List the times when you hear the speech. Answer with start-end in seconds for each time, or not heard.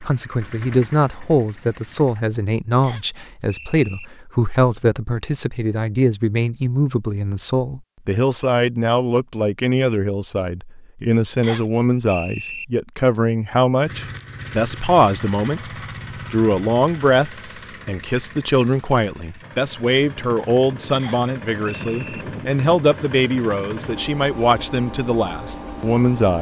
0.0-15.6, 16.3-26.3.